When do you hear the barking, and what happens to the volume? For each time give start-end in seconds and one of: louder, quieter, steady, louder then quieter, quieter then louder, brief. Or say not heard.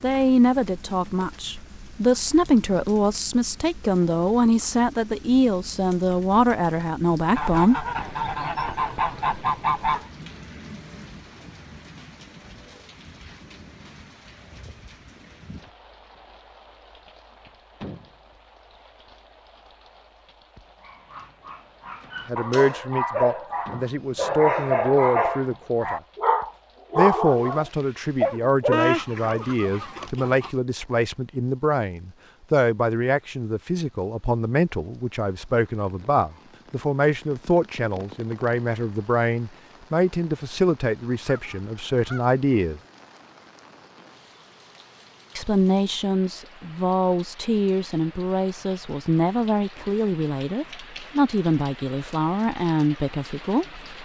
20.9-29.7 louder.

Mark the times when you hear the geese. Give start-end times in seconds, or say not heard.
7.3-10.1, 28.7-30.5, 41.2-42.4.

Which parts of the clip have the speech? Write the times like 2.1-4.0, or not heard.
0.0-7.8, 22.2-26.0, 26.9-42.8, 45.4-53.8.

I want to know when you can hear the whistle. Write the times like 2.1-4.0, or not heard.
not heard.